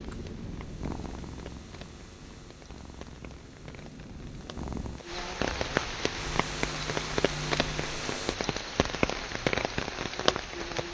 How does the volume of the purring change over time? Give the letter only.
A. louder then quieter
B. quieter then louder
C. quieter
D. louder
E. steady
B.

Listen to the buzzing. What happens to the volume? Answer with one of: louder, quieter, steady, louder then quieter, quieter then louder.
louder.